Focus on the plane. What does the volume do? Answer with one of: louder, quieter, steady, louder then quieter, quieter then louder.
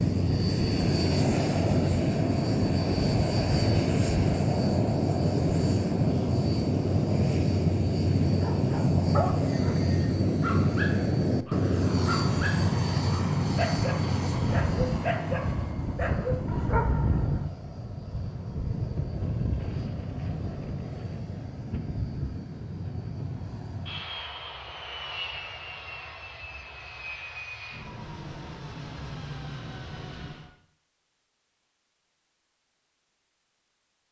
quieter.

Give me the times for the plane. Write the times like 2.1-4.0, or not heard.
0.0-30.5.